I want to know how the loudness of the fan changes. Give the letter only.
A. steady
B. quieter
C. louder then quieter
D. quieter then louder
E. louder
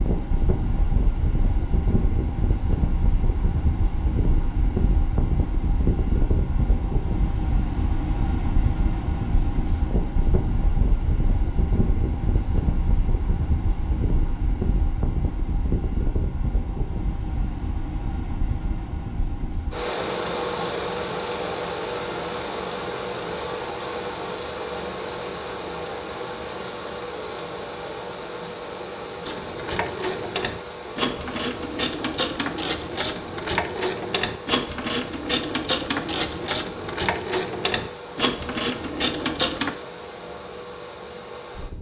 B.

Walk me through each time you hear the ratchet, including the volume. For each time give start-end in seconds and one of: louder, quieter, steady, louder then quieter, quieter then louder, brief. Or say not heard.
29.2-39.7 steady.